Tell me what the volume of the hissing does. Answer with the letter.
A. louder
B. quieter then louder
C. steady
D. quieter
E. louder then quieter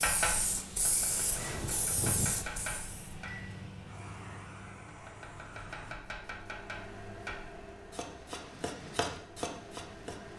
D.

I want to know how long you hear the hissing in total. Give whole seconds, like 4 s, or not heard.
6 s.